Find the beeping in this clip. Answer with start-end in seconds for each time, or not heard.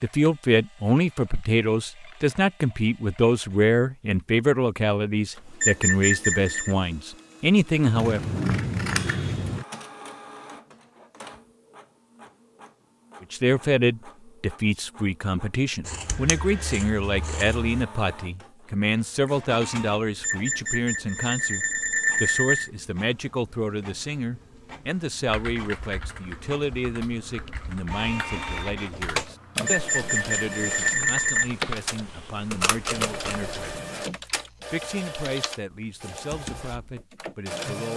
5.6-6.8, 20.2-22.7, 29.6-31.5.